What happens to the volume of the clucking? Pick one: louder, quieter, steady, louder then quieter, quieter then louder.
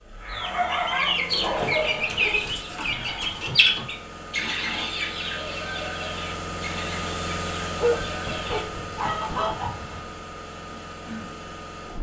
quieter then louder.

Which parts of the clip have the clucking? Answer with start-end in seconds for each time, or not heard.
0.2-10.2.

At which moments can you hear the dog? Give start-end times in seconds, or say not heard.
1.1-2.9, 7.8-9.6.